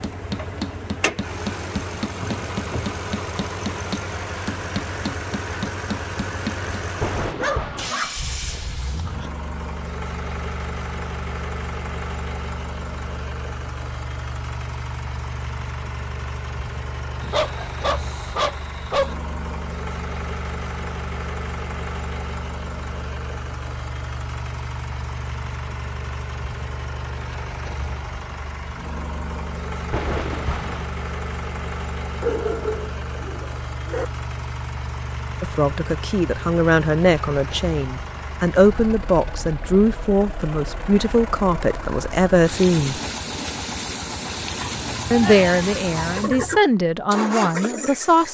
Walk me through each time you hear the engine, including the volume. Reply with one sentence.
The engine can be heard from 0.0 to 48.2 s, at a steady volume.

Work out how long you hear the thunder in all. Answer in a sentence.
The thunder can be heard for 2 seconds in total.